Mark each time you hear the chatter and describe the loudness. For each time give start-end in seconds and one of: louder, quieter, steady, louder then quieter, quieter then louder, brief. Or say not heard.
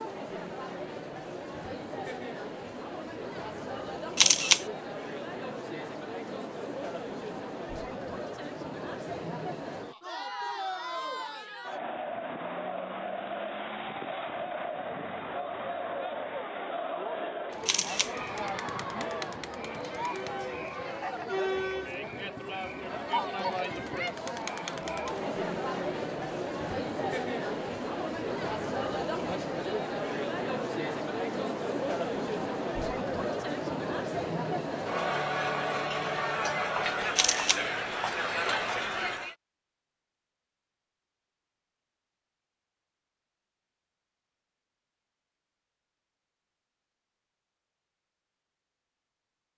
0.0-39.4 louder.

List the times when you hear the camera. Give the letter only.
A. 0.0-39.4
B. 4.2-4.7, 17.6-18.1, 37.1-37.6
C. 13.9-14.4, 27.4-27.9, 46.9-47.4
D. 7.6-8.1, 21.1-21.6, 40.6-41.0
B.